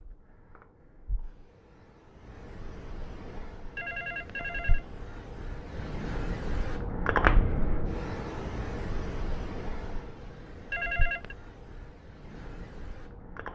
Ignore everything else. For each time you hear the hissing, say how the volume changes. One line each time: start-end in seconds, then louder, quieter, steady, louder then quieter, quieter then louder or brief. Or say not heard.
0.0-13.5 louder then quieter.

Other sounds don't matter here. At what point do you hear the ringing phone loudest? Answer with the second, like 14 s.
11 s.